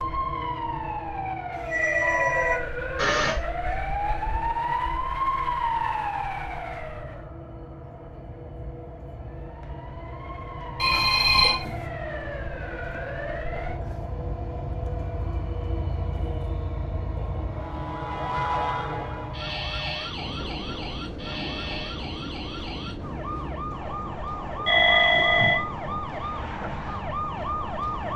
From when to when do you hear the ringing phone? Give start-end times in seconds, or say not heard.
1.6-3.4, 10.8-11.8, 24.6-25.6.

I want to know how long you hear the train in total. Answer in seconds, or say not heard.
28 s.